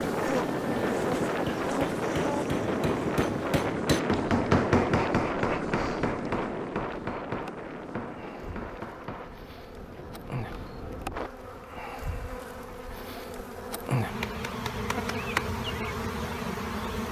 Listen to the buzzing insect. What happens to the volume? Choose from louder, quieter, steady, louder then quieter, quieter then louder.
quieter then louder.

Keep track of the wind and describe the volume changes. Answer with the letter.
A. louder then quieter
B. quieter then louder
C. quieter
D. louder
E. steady
C.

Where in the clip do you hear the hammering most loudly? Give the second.
5 s.